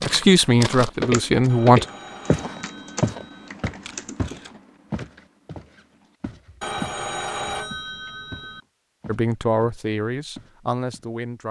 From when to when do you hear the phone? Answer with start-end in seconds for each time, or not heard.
1.4-3.5, 6.6-8.6.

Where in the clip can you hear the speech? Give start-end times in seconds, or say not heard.
0.0-1.9, 9.1-11.4.